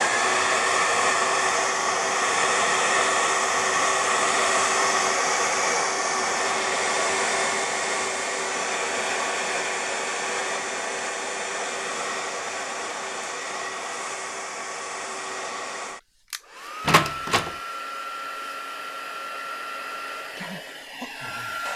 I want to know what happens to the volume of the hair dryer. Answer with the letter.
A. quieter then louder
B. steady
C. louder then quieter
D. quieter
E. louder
D.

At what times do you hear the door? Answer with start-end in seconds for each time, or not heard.
16.9-17.6.